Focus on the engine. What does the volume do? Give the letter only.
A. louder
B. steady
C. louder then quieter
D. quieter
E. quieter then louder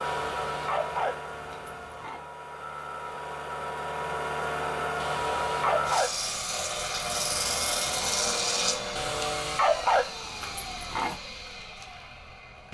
C.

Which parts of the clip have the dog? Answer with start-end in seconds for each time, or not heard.
0.0-2.2, 5.0-6.3, 8.9-11.2.